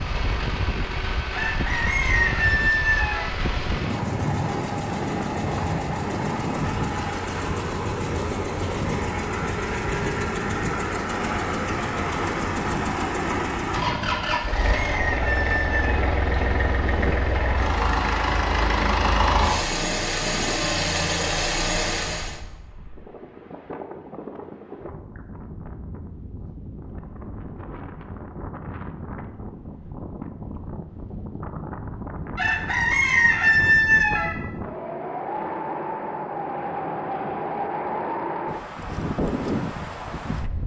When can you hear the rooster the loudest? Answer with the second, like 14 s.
34 s.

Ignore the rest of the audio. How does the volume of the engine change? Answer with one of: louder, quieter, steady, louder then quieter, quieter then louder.
louder.